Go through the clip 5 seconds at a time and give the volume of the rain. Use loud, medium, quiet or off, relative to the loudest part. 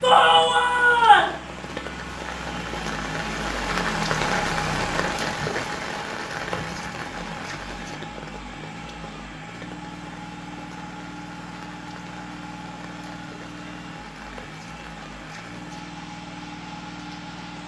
loud, loud, quiet, quiet.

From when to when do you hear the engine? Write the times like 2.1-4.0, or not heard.
0.0-17.6.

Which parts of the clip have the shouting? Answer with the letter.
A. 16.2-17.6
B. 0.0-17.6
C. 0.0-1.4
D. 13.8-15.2
C.